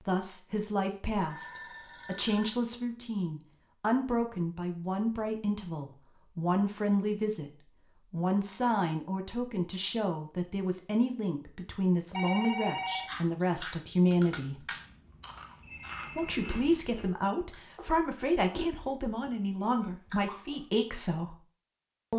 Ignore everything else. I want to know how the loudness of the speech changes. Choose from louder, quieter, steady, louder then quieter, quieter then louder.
steady.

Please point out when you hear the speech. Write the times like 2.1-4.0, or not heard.
0.0-14.7, 16.1-21.4.